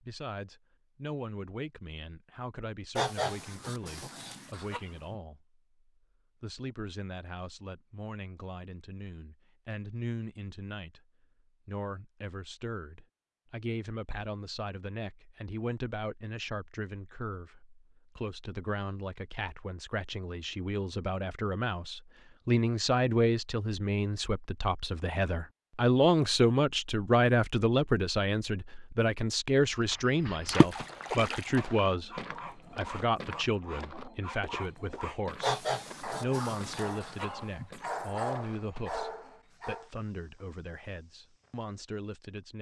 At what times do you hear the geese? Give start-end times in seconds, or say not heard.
3.0-5.2, 35.4-37.7.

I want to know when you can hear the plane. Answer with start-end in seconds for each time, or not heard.
not heard.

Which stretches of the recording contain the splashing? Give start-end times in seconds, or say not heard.
30.4-31.6.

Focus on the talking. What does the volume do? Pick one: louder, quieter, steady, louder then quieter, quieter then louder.
louder then quieter.